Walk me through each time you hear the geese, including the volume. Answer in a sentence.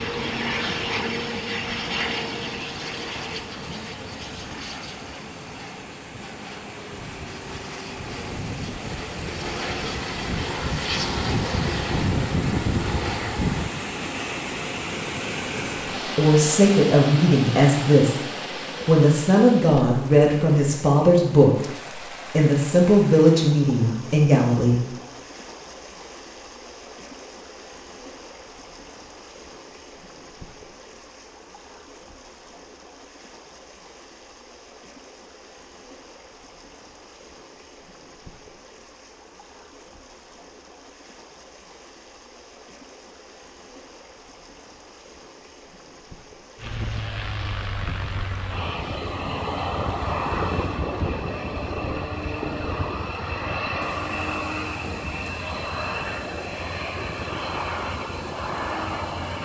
The geese can't be heard in this clip.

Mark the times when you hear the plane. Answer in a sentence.
The plane can be heard from 0.0 to 13.7 s and from 46.5 to 59.4 s.